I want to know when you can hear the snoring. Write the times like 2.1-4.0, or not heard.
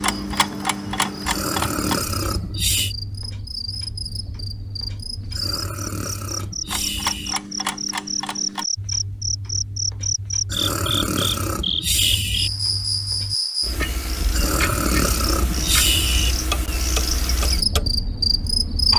1.2-3.0, 5.3-7.3, 10.4-12.5, 14.3-16.4.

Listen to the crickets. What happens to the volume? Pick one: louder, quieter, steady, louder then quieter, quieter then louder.
louder.